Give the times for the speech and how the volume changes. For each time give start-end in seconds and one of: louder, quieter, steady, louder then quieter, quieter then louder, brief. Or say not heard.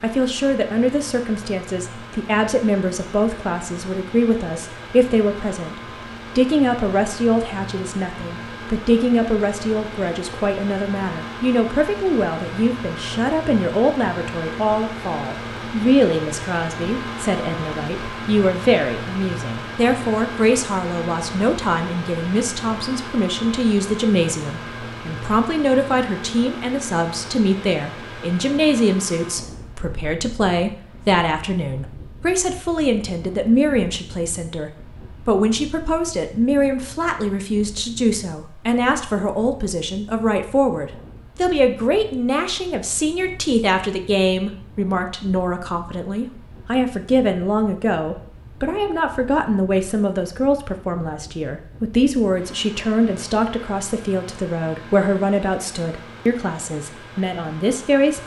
0.0-58.2 steady.